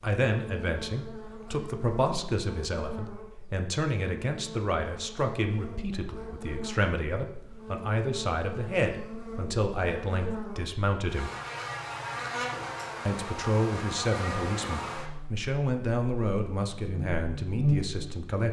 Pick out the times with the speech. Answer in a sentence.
The speech can be heard from 0.0 to 11.3 s and from 13.1 to 18.4 s.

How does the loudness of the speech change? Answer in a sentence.
The loudness of the speech stays about the same.